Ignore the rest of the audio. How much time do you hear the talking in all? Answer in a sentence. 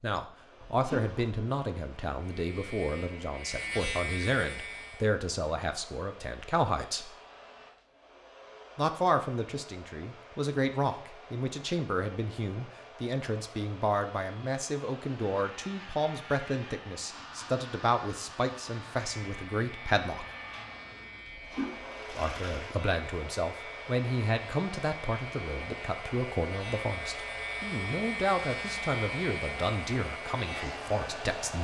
The talking can be heard for 28 seconds in total.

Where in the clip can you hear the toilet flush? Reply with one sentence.
You can hear the toilet flush from 0.6 to 1.3 s and from 21.2 to 22.8 s.